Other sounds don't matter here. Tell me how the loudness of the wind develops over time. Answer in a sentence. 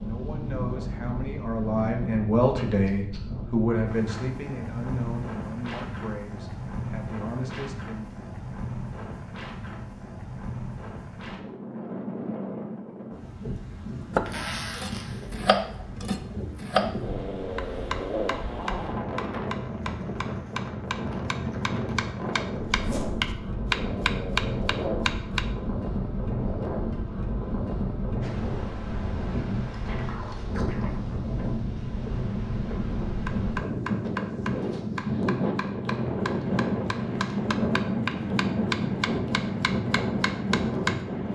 The loudness of the wind goes up.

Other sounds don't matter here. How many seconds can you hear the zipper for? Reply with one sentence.
The zipper can be heard for 2 seconds in total.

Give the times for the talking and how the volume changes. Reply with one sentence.
You can hear the talking from 0.0 to 8.2 s, getting louder then quieter.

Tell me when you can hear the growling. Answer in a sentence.
You can hear the growling from 17.0 to 19.1 s and from 23.7 to 25.1 s.